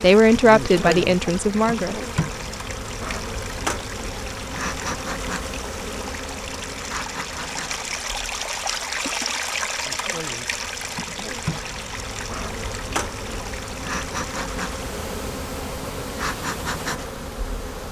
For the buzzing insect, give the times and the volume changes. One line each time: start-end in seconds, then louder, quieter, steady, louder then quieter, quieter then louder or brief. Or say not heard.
0.0-17.8 quieter then louder.